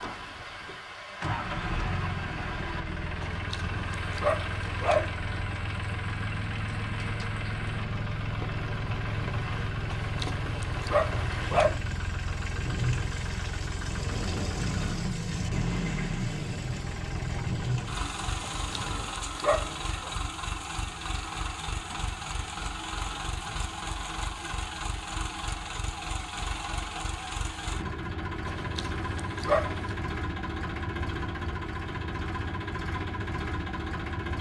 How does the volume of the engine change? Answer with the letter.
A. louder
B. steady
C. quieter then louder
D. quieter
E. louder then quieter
B.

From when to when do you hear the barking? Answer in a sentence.
The barking can be heard from 3.2 to 5.2 s, from 9.9 to 11.8 s, from 18.4 to 20.1 s and from 28.4 to 29.9 s.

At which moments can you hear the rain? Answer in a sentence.
The rain can be heard from 0.0 to 19.2 s.